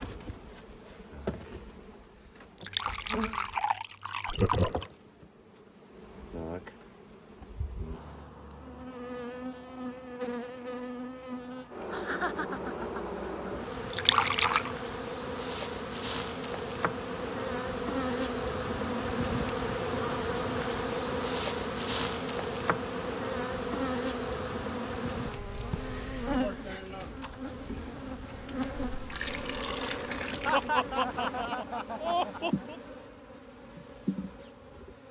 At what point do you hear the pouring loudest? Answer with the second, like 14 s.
14 s.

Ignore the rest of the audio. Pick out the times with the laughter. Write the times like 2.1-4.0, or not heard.
4.2-4.8, 11.9-13.5, 30.4-32.8.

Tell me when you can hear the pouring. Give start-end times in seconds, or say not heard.
2.5-4.9, 13.9-14.8, 28.9-30.8.